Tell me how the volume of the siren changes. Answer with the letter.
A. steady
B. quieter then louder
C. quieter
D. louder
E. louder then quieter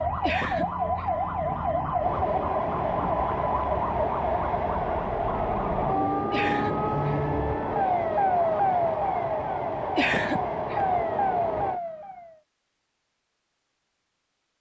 A.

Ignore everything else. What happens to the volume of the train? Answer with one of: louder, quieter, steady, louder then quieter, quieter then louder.
steady.